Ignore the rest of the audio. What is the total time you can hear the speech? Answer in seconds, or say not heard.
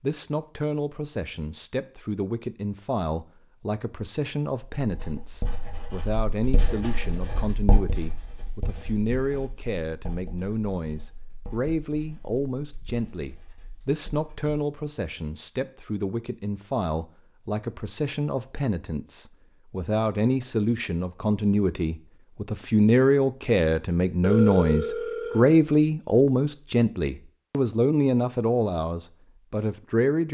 30 s.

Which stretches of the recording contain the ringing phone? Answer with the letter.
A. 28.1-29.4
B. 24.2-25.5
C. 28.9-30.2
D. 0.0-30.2
B.